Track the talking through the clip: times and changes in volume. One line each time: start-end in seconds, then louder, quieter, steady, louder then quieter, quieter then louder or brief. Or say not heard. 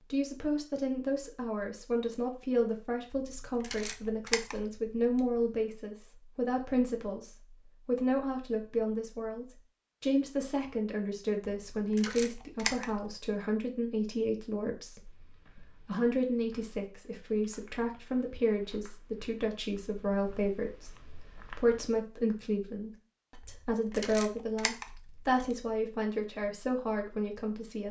0.1-27.8 steady.